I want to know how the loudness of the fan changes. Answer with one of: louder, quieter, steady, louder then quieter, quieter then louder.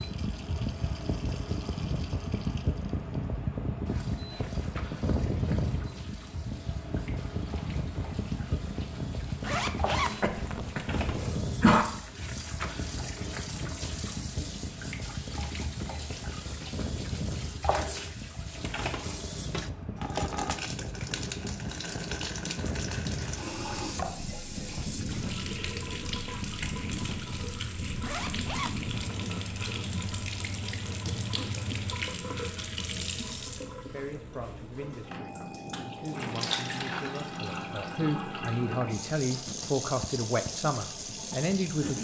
quieter.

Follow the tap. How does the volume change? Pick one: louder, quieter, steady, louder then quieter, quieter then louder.
louder.